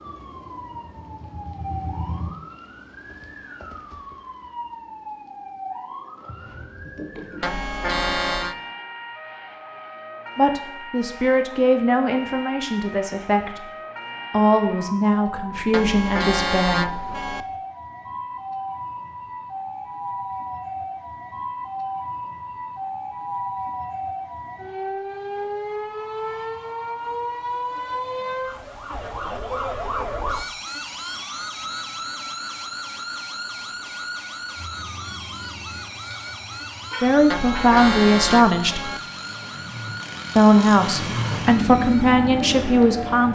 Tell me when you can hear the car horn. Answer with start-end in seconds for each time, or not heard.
7.4-8.6, 15.7-17.4, 37.3-39.0.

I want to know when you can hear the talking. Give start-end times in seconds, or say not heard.
10.3-13.6, 14.3-17.0, 37.0-38.9, 40.4-43.3.